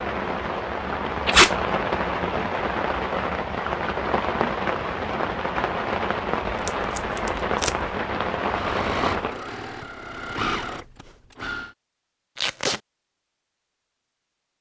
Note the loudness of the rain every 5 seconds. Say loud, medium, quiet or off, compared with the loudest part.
loud, loud, off.